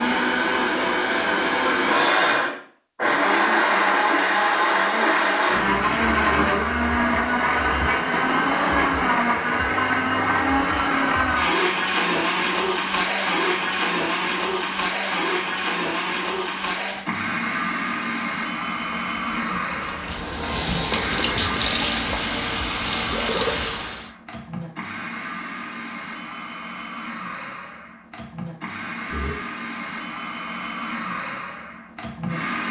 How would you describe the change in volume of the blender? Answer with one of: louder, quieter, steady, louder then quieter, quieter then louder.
quieter.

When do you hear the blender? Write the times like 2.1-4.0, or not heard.
0.0-32.6.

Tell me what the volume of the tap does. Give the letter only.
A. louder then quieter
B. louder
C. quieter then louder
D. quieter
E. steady
B.